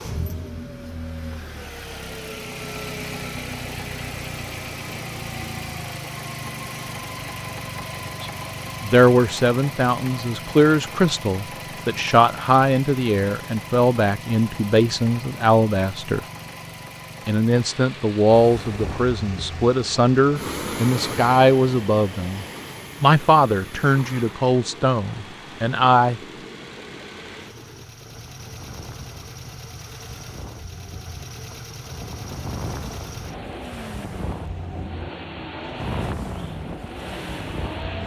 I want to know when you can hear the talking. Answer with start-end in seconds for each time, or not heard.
8.2-16.2, 17.2-26.2.